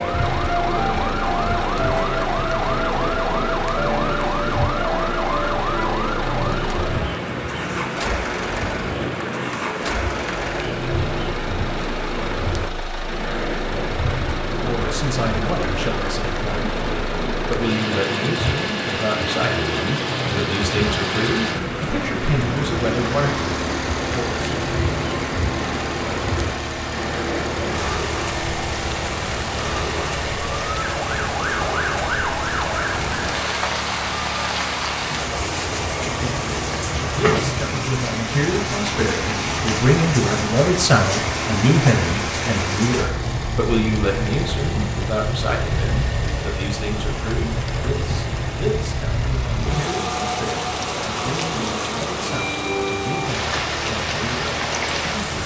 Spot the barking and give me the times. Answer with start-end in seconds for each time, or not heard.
not heard.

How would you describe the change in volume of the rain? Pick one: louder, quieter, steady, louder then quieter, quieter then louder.
steady.